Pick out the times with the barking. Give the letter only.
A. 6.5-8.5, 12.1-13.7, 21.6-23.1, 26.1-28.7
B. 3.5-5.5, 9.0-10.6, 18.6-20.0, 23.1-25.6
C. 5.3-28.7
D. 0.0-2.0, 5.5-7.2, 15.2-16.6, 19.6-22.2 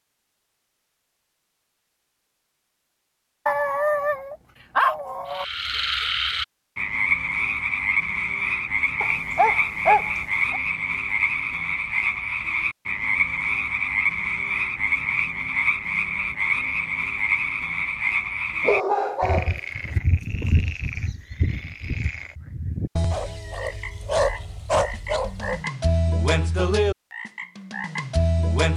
B.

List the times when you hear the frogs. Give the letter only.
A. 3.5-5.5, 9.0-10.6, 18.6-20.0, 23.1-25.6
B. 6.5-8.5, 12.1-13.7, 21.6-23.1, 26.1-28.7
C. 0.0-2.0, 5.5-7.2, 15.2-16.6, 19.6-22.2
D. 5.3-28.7
D.